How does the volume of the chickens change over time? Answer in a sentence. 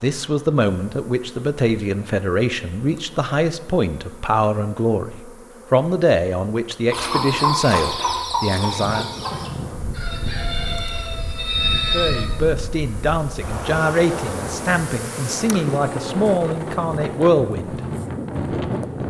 The volume of the chickens goes down, then up.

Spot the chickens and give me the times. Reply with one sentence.
The chickens can be heard from 6.9 to 12.2 s.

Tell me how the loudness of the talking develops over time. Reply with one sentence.
The loudness of the talking stays about the same.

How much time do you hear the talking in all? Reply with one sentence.
The talking can be heard for 15 seconds in total.